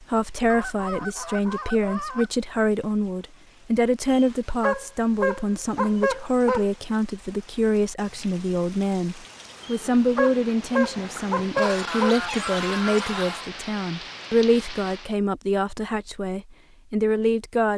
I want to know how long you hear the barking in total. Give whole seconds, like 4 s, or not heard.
5 s.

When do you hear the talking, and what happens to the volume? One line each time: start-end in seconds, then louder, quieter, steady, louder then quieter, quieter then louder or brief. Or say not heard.
0.0-17.7 steady.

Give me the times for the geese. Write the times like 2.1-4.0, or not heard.
0.5-2.3, 10.9-13.5.